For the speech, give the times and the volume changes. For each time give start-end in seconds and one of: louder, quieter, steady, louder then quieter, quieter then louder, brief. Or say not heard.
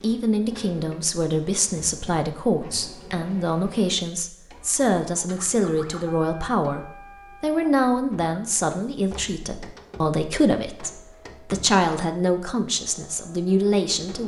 0.0-14.2 steady.